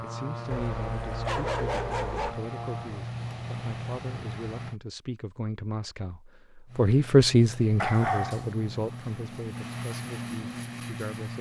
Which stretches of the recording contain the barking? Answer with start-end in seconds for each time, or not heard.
0.5-2.4, 7.8-8.5.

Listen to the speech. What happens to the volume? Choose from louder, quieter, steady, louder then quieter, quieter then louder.
louder then quieter.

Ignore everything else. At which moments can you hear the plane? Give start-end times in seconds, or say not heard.
0.0-4.8, 6.7-11.3.